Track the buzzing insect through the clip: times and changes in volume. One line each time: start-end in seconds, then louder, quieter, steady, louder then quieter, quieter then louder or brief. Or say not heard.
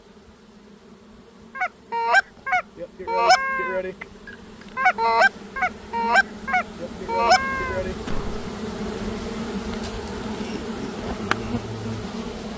0.0-12.5 louder.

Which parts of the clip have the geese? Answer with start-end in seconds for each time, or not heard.
1.6-8.5.